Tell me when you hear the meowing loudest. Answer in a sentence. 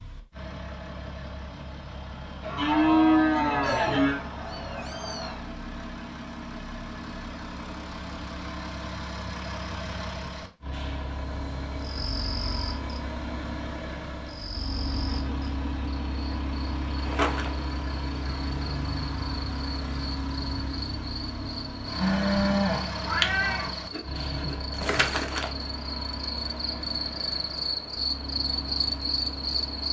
The loudest moment of the meowing is at 23 seconds.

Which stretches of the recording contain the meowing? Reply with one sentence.
You can hear the meowing from 3.6 to 5.4 s and from 23.0 to 24.6 s.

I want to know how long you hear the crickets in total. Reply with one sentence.
You can hear the crickets for 19 seconds altogether.